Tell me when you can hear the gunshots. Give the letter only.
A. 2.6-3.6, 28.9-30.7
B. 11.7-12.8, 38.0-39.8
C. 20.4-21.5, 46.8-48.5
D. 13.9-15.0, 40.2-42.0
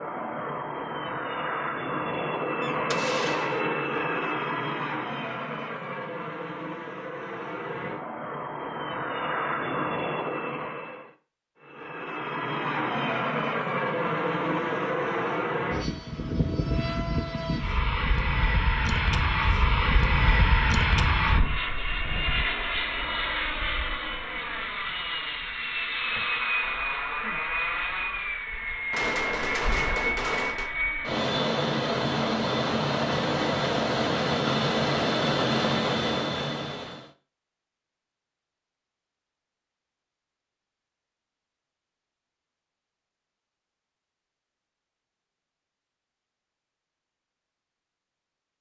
A.